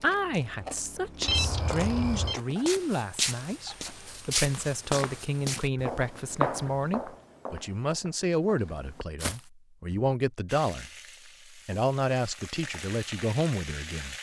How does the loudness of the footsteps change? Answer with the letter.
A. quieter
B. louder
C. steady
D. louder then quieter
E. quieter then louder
A.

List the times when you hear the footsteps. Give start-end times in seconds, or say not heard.
2.5-10.1.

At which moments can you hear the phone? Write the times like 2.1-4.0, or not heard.
1.2-2.4.